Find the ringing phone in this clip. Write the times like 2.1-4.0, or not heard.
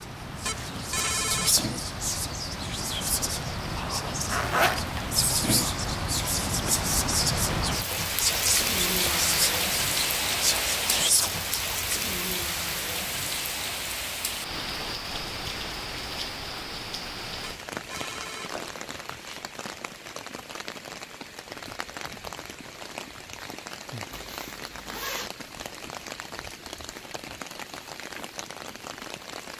0.5-1.6, 17.4-19.4.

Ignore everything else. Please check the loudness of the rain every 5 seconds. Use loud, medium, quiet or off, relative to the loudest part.
medium, loud, loud, medium, medium, medium.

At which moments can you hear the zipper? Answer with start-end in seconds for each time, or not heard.
4.2-5.0, 24.1-25.3.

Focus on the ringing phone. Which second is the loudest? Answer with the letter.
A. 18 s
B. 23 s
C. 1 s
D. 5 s
C.